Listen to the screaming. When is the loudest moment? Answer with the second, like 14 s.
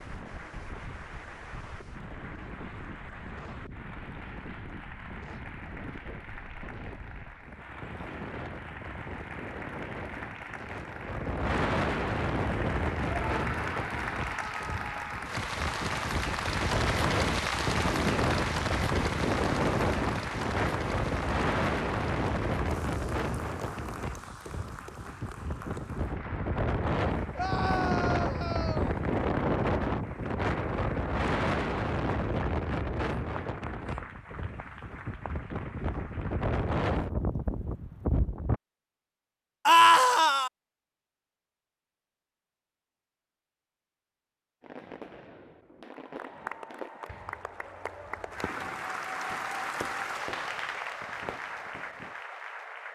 40 s.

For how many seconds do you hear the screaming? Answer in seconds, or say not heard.
5 s.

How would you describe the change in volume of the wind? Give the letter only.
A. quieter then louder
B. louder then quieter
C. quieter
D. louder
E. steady
D.